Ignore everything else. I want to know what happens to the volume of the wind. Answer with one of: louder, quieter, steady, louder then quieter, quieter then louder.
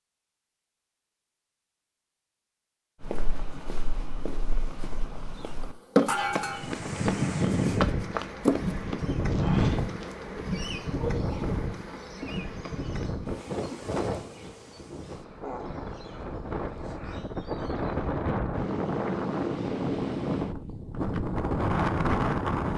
quieter then louder.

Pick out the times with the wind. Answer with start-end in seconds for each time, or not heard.
6.5-22.7.